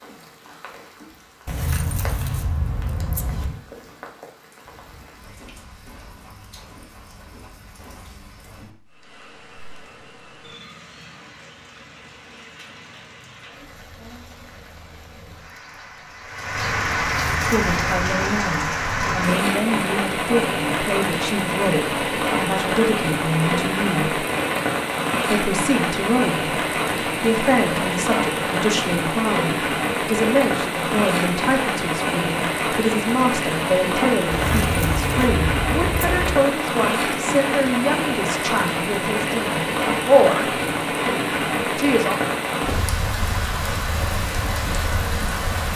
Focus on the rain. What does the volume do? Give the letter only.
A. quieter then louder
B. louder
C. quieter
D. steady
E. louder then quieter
B.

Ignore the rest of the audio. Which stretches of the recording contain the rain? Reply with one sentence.
You can hear the rain from 0.0 to 45.7 s.